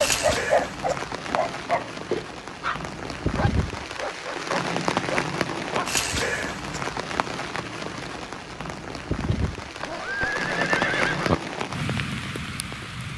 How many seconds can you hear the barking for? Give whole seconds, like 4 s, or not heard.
6 s.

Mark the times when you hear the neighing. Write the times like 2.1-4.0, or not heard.
9.8-11.3.